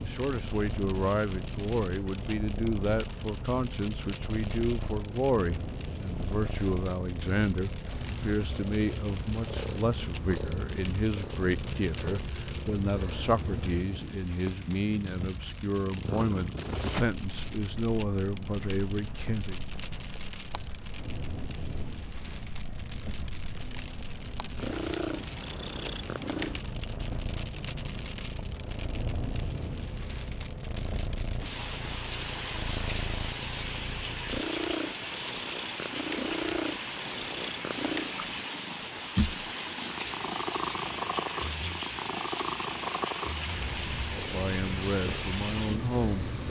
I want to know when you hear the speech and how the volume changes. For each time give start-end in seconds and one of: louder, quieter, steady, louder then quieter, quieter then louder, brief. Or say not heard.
0.0-19.6 steady
44.1-46.4 brief.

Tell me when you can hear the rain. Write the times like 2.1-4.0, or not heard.
0.0-46.4.